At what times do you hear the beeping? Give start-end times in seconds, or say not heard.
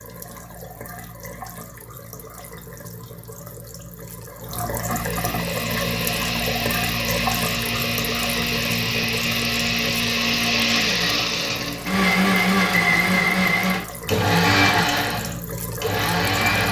not heard.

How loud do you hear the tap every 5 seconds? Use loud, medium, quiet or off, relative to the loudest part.
medium, loud, medium, loud.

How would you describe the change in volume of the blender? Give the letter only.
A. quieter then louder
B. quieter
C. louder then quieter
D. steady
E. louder
E.